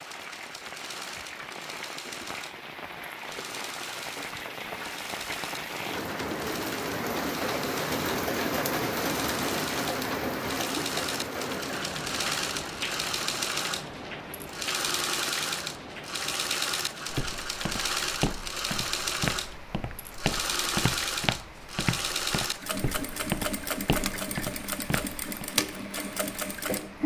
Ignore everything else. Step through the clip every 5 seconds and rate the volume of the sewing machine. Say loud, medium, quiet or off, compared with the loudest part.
medium, medium, loud, loud, loud, loud.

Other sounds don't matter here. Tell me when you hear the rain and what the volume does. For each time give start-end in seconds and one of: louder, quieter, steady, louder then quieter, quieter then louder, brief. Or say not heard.
0.0-27.0 louder then quieter.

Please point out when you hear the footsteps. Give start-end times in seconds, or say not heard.
17.1-25.4.